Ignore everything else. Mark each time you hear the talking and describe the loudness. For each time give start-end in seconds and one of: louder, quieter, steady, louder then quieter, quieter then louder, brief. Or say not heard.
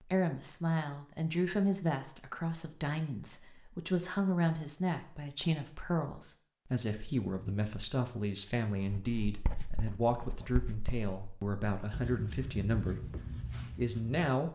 0.0-13.2 steady
13.8-14.5 brief.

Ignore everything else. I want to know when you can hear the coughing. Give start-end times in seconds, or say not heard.
not heard.